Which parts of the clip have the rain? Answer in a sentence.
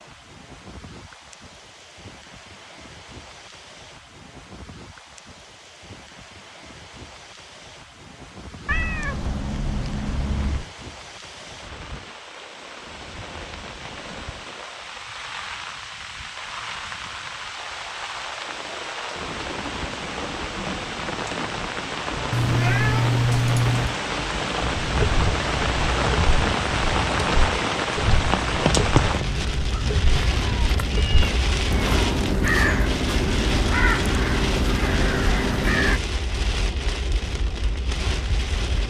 You can hear the rain from 0.0 to 38.8 s.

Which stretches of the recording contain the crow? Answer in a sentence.
You can hear the crow from 24.6 to 36.0 s.